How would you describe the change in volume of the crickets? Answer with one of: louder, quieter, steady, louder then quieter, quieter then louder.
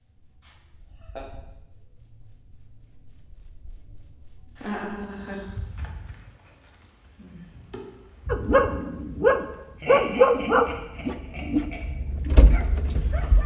louder then quieter.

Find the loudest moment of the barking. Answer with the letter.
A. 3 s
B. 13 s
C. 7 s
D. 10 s
D.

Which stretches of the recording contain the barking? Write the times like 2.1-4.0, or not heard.
8.2-13.4.